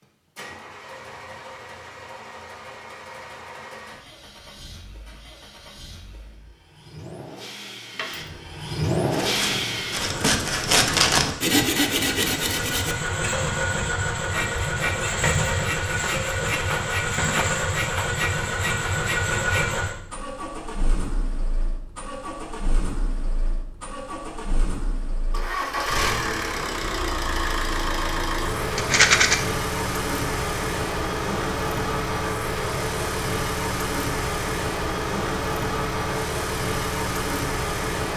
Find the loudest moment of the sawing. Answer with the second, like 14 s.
11 s.